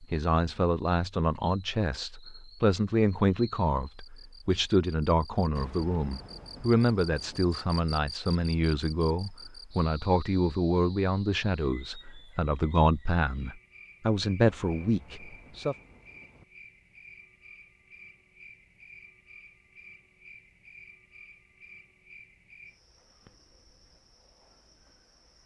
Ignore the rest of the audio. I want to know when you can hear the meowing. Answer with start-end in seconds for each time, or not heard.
not heard.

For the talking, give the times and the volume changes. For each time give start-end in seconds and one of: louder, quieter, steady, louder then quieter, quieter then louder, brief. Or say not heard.
0.0-15.8 steady.